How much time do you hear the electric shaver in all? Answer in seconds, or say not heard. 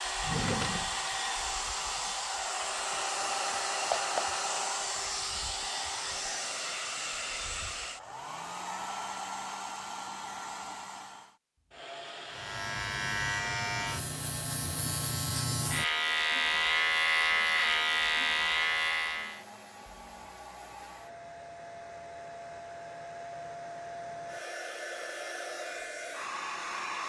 7 s.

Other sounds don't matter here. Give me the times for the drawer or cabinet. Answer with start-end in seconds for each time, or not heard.
0.2-1.1.